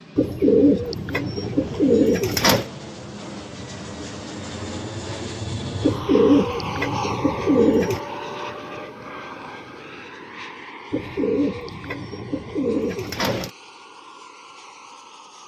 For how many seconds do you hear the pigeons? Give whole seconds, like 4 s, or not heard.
7 s.